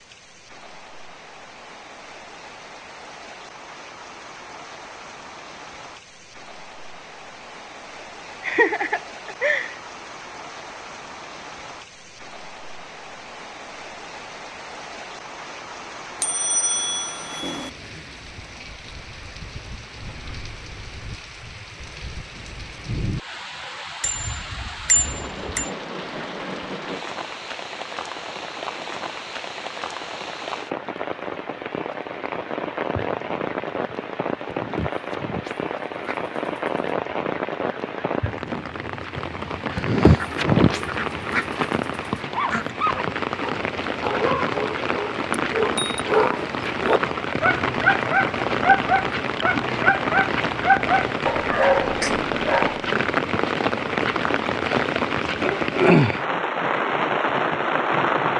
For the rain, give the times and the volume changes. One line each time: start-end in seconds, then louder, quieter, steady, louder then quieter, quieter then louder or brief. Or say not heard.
0.0-58.3 louder.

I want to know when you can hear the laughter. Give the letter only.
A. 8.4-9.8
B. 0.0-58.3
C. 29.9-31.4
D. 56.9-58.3
A.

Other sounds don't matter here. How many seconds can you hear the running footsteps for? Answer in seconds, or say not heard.
not heard.